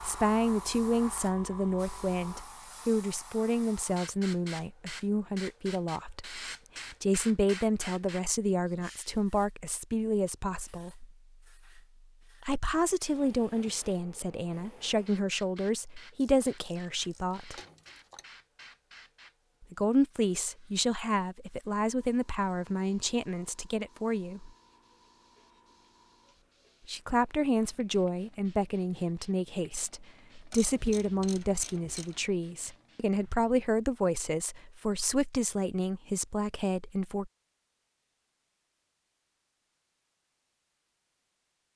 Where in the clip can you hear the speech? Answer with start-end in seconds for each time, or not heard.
0.0-6.4, 7.0-11.1, 12.4-17.6, 19.6-24.5, 26.9-37.3.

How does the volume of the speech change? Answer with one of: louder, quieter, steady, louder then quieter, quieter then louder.
steady.